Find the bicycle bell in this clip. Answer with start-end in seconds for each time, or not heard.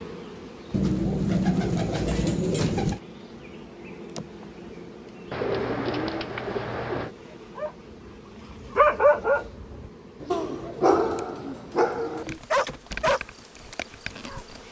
not heard.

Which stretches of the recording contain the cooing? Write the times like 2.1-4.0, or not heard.
0.7-3.0, 5.3-7.2, 10.2-12.4.